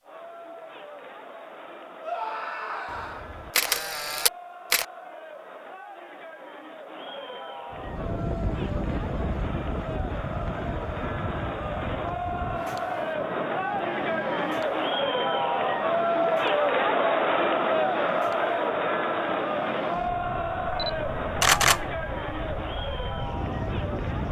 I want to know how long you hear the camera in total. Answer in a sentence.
You can hear the camera for 3 seconds altogether.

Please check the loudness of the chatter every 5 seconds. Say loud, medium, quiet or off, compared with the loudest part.
quiet, quiet, medium, loud, medium.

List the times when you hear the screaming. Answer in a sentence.
The screaming can be heard from 2.0 to 3.2 s.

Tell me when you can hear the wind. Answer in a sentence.
The wind can be heard from 7.7 to 24.2 s.